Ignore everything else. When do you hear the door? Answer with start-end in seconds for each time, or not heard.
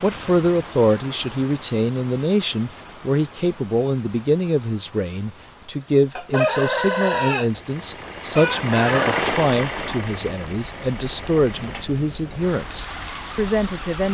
not heard.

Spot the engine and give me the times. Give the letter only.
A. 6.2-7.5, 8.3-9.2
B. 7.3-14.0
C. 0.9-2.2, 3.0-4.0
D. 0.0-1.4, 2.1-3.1
B.